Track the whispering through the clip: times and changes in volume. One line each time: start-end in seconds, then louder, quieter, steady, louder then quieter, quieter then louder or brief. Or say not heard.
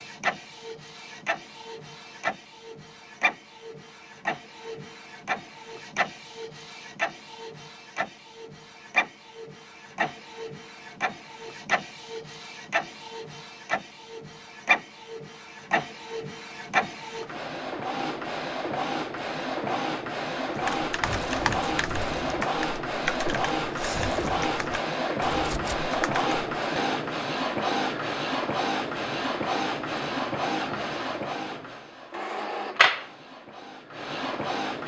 not heard.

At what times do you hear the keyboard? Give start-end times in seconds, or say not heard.
20.6-26.3.